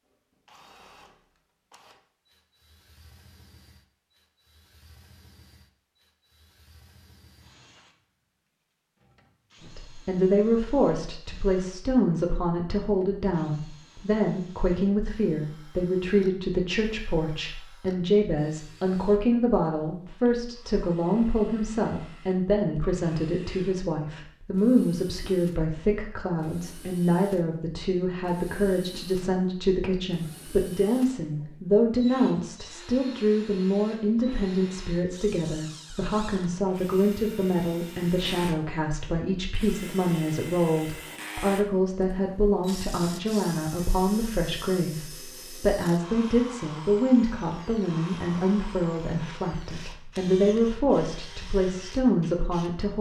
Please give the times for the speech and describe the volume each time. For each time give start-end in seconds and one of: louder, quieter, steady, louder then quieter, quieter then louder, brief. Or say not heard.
9.6-52.9 steady.